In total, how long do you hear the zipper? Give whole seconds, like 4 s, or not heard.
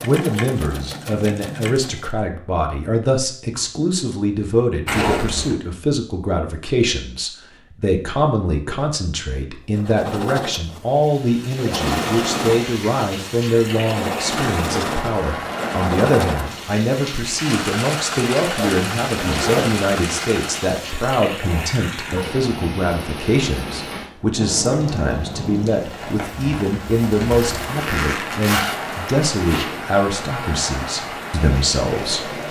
4 s.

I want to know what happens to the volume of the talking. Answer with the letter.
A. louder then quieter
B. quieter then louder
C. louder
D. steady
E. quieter
D.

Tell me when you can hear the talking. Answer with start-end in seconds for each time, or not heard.
0.0-32.4.